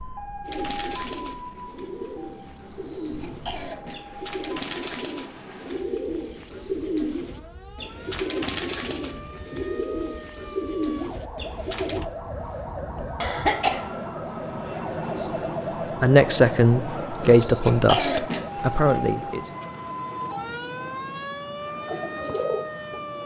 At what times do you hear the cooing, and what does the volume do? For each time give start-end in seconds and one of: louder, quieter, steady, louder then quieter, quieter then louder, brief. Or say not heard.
0.5-12.1 louder
21.8-23.1 brief.